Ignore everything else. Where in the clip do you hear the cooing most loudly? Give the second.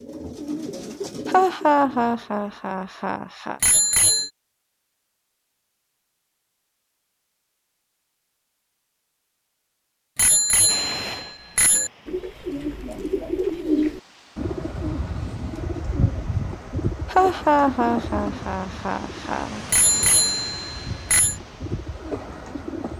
14 s.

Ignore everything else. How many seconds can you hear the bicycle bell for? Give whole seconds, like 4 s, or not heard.
4 s.